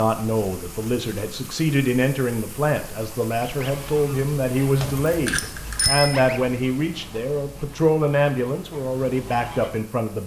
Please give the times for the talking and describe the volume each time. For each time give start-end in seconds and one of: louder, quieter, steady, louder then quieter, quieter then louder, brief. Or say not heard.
0.0-10.2 steady.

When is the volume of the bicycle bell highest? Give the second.
6 s.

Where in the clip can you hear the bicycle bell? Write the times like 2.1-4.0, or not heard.
4.8-6.2.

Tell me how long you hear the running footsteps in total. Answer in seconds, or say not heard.
not heard.